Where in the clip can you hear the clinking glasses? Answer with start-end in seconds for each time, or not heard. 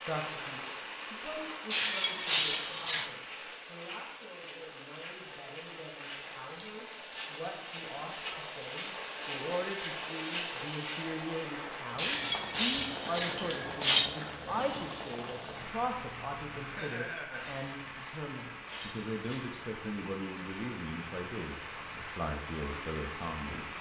1.7-3.1, 11.9-14.1, 16.8-19.5.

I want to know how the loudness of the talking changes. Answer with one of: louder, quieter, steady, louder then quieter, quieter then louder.
louder.